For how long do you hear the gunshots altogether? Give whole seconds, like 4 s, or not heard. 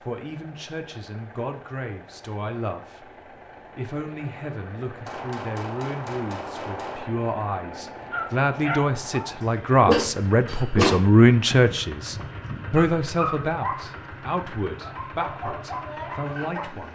2 s.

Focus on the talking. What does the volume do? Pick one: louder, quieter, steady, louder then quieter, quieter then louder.
louder then quieter.